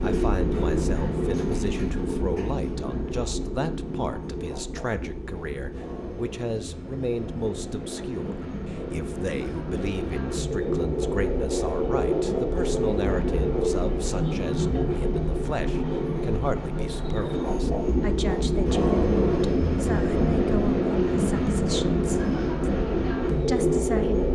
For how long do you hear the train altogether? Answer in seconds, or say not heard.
24 s.